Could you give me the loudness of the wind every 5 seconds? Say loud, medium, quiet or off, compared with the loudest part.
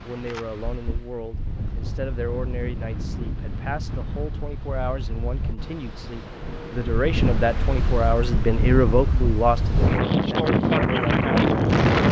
quiet, medium, loud.